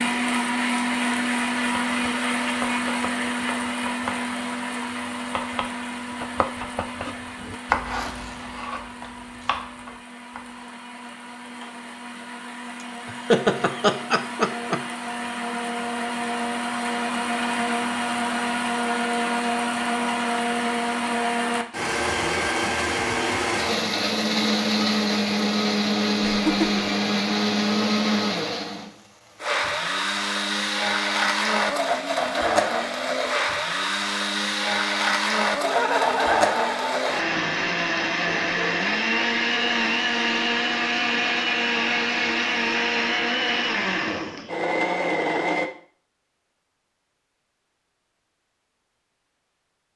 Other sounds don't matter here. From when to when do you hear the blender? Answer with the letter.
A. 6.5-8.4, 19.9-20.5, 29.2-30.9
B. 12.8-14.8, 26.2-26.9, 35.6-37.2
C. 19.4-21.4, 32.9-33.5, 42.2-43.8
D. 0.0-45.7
D.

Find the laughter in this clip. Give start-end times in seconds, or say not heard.
12.8-14.8, 26.2-26.9, 35.6-37.2.